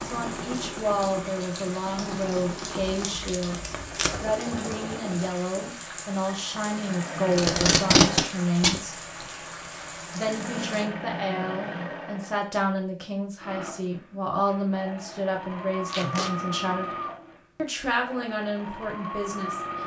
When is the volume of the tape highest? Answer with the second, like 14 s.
8 s.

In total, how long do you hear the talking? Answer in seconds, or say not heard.
18 s.